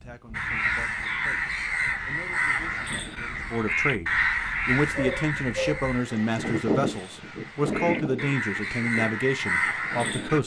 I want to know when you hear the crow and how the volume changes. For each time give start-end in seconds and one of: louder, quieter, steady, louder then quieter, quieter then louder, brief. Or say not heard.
0.3-10.4 quieter then louder.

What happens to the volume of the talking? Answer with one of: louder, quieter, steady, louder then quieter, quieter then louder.
louder.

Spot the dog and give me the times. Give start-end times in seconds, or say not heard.
5.0-6.4.